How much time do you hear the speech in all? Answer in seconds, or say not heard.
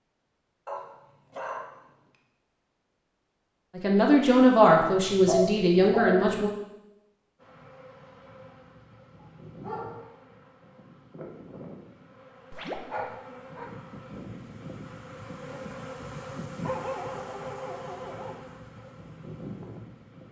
3 s.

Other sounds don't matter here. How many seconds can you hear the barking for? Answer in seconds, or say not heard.
6 s.